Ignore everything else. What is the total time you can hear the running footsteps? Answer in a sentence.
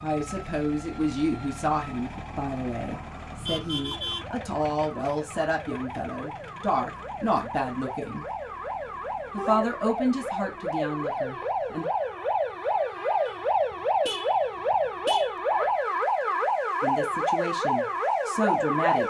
The running footsteps can't be heard in this clip.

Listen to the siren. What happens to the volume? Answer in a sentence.
The loudness of the siren goes up.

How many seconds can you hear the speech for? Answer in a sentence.
You can hear the speech for 13 seconds altogether.